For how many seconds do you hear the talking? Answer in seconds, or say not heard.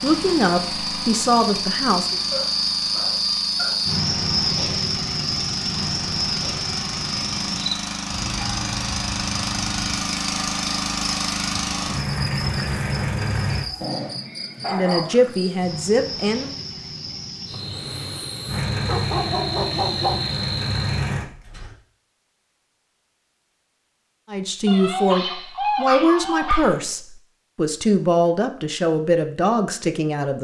10 s.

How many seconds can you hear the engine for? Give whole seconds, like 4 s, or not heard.
17 s.